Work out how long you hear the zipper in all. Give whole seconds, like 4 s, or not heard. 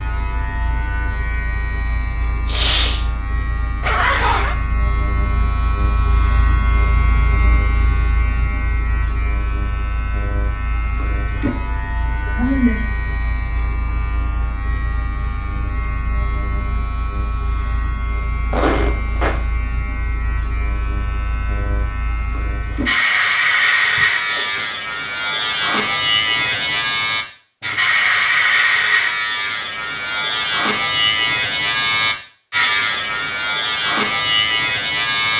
2 s.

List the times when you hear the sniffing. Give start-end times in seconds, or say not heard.
2.5-3.0, 12.2-12.8, 23.9-24.6.